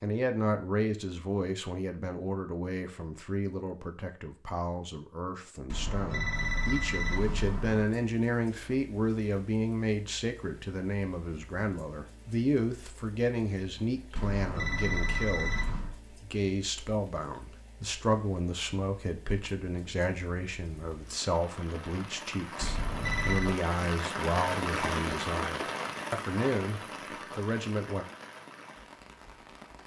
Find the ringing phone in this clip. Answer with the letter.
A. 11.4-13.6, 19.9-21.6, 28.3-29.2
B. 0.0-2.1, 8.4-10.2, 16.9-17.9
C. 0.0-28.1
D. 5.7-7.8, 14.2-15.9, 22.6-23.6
D.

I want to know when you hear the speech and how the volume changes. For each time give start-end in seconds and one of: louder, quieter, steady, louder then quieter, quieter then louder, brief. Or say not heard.
0.0-28.1 steady.